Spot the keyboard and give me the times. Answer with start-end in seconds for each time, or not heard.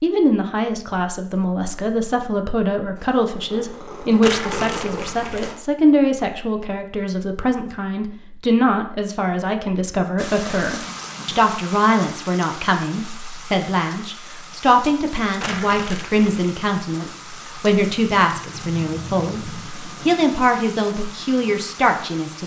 not heard.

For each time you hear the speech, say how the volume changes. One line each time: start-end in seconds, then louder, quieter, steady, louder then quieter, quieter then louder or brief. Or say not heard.
0.0-22.4 steady.